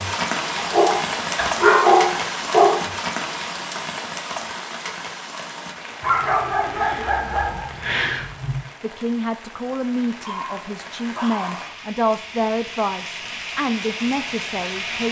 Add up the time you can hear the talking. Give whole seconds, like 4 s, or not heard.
6 s.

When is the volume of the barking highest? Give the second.
2 s.